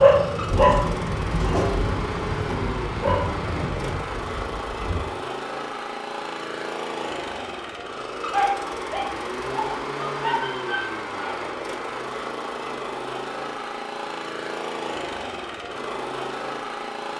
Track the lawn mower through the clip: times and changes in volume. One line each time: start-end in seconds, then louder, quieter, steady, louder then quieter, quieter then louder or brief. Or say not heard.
0.0-17.1 steady.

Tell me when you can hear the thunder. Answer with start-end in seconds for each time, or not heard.
0.5-5.1.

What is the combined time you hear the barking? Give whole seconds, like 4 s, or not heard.
7 s.